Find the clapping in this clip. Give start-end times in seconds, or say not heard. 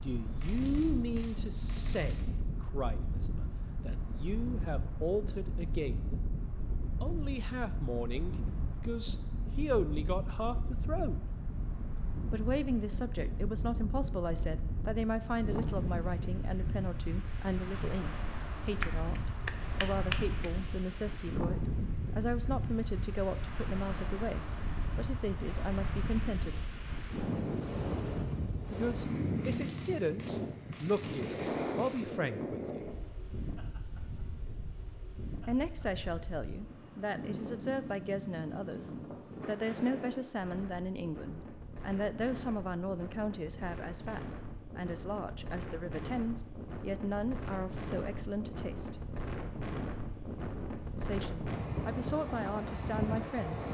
18.8-20.5.